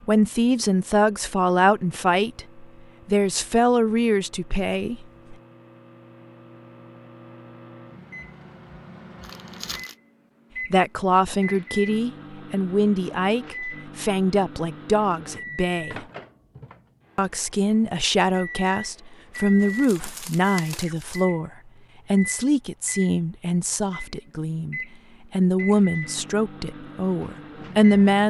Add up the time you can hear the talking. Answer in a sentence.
The talking can be heard for 21 seconds in total.